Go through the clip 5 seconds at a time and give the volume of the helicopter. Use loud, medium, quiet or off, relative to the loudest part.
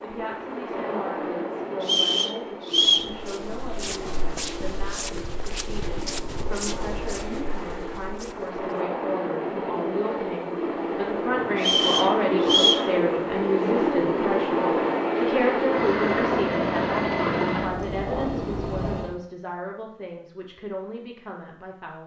medium, medium, loud, loud, off.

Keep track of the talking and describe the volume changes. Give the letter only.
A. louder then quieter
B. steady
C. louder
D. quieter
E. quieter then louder
A.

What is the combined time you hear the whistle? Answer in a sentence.
You can hear the whistle for 3 seconds altogether.